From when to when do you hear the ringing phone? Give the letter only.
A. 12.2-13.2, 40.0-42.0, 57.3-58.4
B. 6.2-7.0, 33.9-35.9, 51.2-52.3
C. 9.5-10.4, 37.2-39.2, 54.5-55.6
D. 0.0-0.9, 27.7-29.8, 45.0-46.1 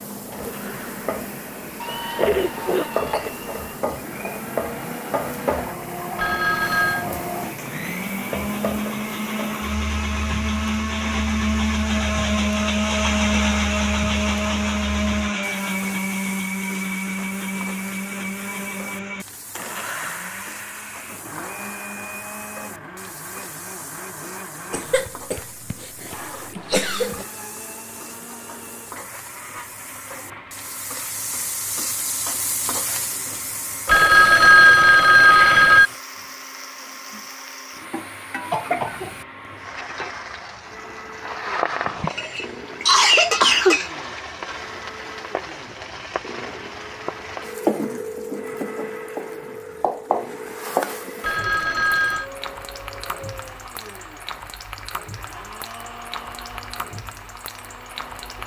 B.